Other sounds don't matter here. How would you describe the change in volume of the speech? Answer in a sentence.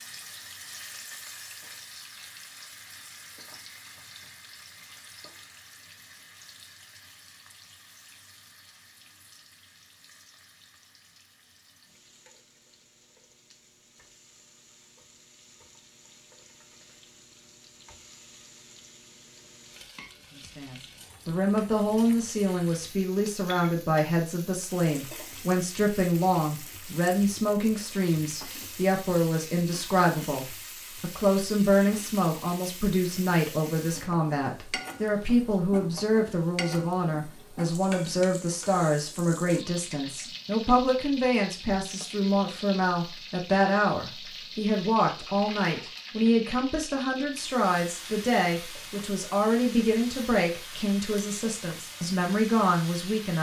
The volume of the speech stays about the same.